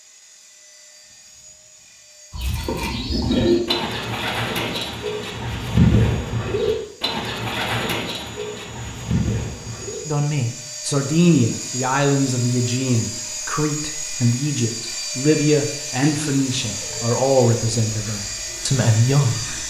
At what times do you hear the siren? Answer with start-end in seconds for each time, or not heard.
not heard.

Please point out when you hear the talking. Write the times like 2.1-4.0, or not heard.
10.1-19.6.